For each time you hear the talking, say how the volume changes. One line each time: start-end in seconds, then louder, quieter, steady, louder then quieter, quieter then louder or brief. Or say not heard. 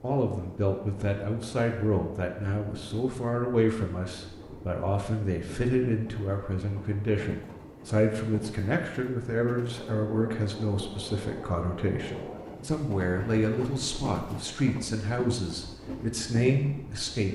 0.0-17.3 steady.